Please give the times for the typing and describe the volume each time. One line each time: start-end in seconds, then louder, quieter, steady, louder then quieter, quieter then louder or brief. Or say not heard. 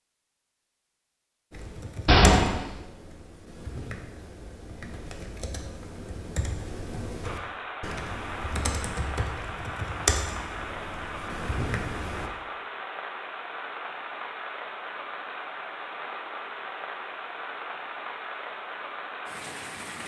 1.5-12.3 louder.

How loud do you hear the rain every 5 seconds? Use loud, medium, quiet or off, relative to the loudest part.
off, loud, loud, loud.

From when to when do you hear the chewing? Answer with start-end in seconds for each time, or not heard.
not heard.